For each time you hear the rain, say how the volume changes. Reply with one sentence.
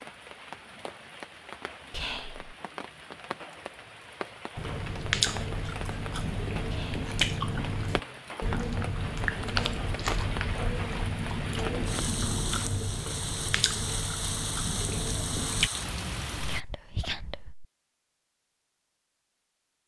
You can hear the rain from 0.0 to 16.6 s, getting louder.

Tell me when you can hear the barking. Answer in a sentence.
You can't hear the barking here.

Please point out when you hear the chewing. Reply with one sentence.
The chewing can be heard from 4.5 to 15.7 s.